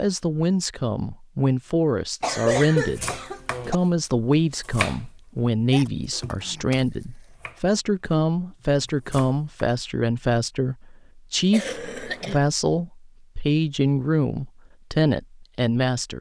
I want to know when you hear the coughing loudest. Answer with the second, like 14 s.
3 s.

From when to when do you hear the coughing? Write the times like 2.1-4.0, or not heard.
2.2-3.8, 5.7-6.8, 11.5-12.4.